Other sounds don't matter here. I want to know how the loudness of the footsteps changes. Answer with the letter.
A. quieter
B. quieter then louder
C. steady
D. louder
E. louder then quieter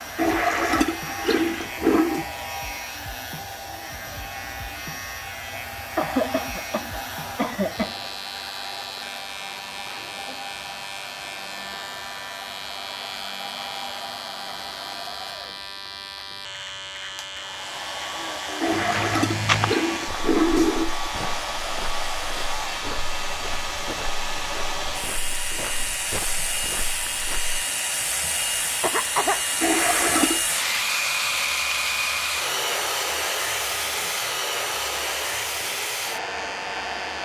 A.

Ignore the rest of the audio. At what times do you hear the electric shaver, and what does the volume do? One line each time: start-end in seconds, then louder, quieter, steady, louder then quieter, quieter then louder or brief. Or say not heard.
0.0-37.2 steady.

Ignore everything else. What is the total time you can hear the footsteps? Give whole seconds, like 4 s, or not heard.
9 s.